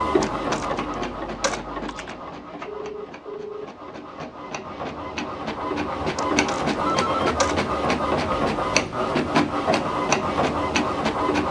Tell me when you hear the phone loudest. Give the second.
7 s.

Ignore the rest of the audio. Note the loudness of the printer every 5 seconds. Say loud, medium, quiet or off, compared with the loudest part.
medium, loud, loud.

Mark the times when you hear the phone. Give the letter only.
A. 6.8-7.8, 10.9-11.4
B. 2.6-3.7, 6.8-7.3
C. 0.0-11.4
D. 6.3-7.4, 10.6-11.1
B.